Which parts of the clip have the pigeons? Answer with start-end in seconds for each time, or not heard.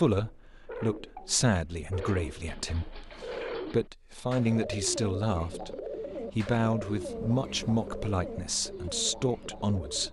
0.2-10.0.